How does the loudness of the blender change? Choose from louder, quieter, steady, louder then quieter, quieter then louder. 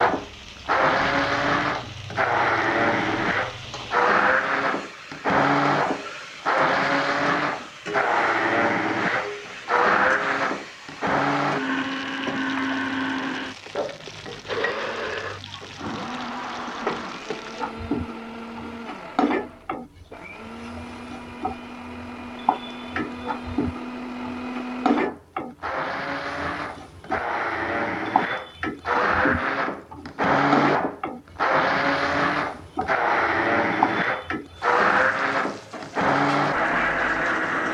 quieter then louder.